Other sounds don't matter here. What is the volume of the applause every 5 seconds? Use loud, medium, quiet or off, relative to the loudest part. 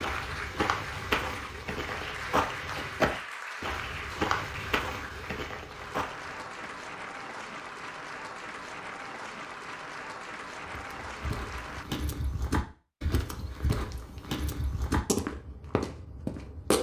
loud, loud, loud, off.